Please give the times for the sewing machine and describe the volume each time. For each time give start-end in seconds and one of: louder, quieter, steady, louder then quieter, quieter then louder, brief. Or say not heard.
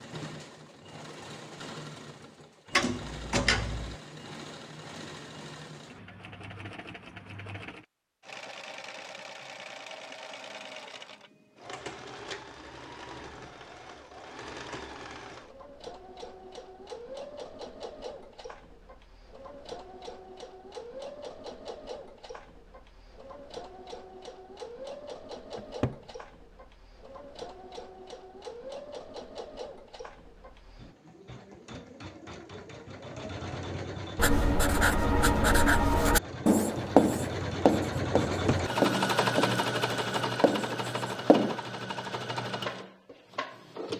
0.0-43.9 louder.